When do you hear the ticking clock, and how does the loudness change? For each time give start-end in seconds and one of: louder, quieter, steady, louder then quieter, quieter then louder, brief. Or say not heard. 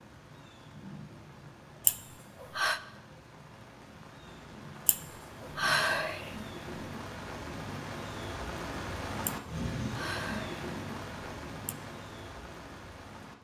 not heard.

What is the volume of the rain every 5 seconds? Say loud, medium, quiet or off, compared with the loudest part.
medium, loud, loud.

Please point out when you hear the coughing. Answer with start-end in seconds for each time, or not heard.
not heard.